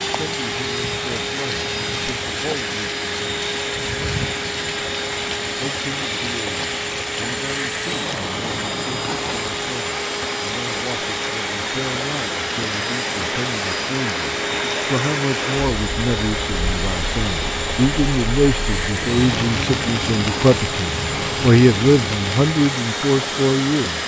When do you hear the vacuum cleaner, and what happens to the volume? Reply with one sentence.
The vacuum cleaner can be heard from 0.0 to 24.0 s, at a steady volume.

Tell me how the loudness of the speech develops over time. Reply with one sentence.
The volume of the speech goes up.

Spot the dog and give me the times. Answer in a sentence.
The dog can't be heard in this clip.